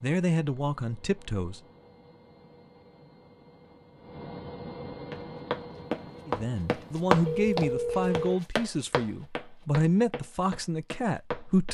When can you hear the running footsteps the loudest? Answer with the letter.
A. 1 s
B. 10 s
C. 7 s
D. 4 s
C.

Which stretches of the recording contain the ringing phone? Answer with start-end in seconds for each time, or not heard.
7.2-8.3.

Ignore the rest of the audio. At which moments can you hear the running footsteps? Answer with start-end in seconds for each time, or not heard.
5.1-11.6.